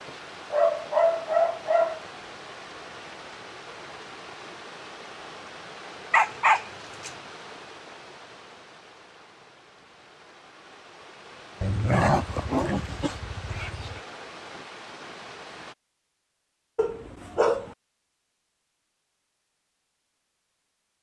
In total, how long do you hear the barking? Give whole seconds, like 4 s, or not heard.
6 s.